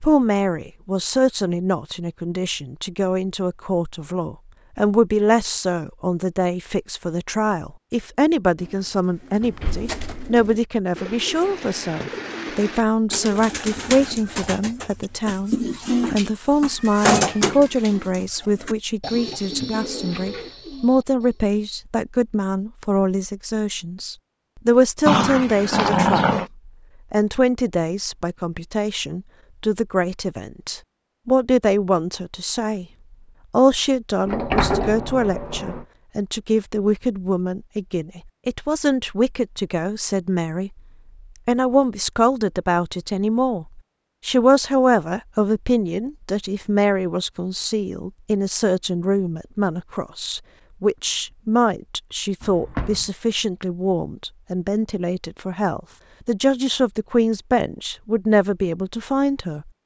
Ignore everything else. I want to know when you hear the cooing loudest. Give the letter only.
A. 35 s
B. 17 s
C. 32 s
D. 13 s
B.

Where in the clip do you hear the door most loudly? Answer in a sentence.
The volume of the door peaks at 35 seconds.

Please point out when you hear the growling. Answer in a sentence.
The growling can be heard from 25.1 to 26.5 s.